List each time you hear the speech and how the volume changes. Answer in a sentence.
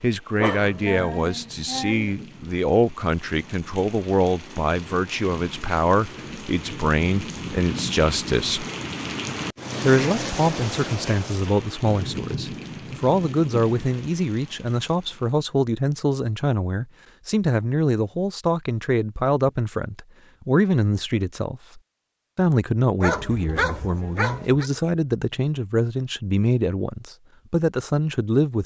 The speech can be heard from 0.0 to 8.7 s, at a steady volume; and from 9.8 to 28.6 s, at a steady volume.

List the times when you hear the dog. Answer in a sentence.
You can hear the dog from 0.3 to 2.1 s and from 23.0 to 24.7 s.